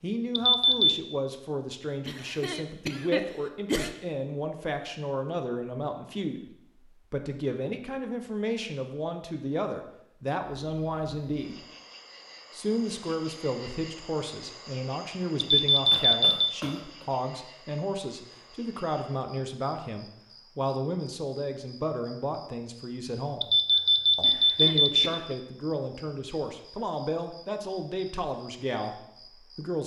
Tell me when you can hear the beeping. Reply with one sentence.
The beeping can be heard from 0.3 to 0.9 s, from 15.3 to 16.5 s and from 23.4 to 25.2 s.